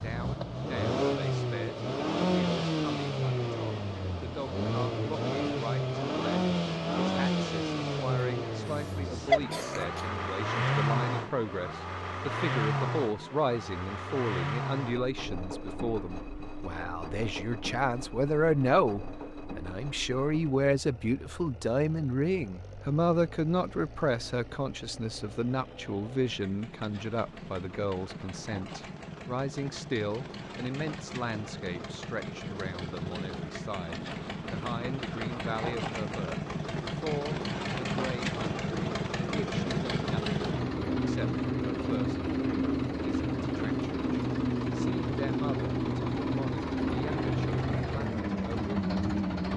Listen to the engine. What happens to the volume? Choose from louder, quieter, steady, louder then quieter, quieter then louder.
quieter then louder.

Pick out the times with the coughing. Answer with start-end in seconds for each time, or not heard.
8.6-10.1.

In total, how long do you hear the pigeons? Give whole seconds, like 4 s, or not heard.
not heard.